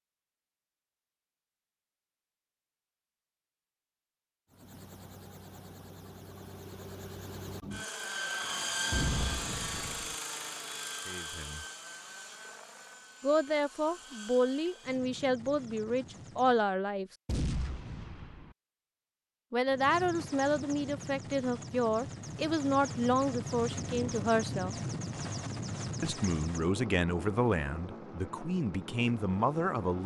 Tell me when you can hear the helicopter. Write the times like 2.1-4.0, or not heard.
4.5-16.7, 19.6-30.0.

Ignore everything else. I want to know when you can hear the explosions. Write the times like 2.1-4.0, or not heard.
8.9-10.2, 17.2-18.6.